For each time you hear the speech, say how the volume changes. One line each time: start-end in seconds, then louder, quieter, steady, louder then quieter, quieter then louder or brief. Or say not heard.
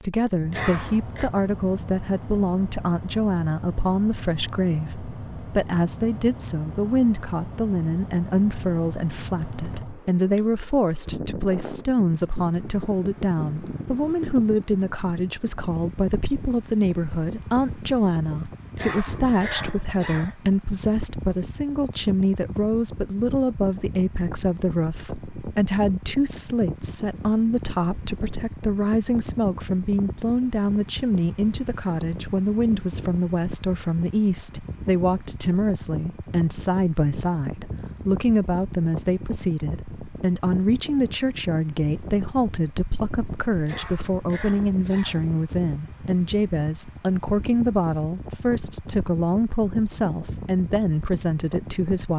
0.0-52.1 steady.